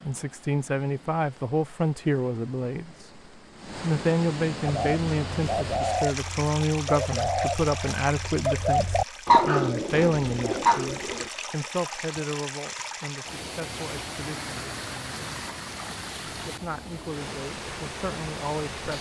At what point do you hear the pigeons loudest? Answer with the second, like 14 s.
9 s.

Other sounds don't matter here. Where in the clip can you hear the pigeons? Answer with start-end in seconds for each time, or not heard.
4.7-11.3.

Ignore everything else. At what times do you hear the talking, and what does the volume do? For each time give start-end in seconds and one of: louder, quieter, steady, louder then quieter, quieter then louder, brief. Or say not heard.
0.0-15.3 quieter
16.2-18.9 brief.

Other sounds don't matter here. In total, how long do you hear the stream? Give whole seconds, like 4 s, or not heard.
19 s.